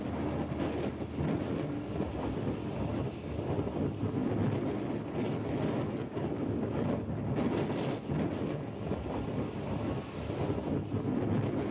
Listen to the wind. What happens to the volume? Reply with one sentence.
The loudness of the wind stays about the same.